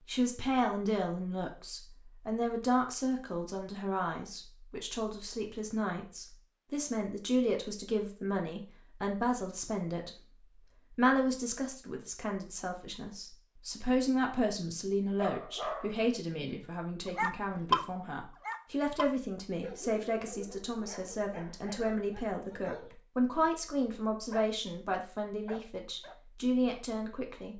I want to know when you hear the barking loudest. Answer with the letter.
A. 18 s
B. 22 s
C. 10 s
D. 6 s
A.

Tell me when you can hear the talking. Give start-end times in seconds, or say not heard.
0.1-27.5.